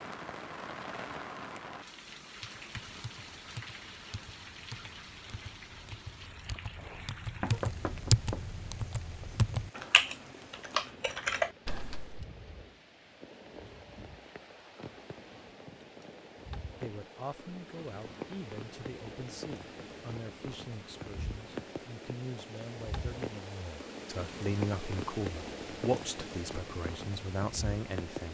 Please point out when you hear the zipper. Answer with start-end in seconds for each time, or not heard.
not heard.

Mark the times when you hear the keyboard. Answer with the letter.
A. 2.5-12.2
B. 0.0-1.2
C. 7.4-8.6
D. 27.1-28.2
A.